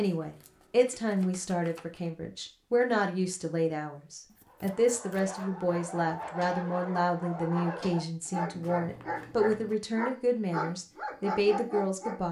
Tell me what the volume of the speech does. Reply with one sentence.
The volume of the speech stays about the same.